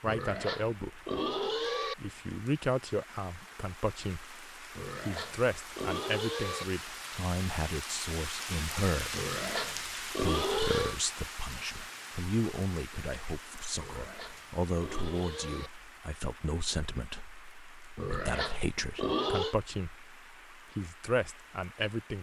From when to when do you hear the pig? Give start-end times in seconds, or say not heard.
0.1-1.9, 4.8-6.7, 9.1-11.0, 13.8-15.7, 17.9-19.6.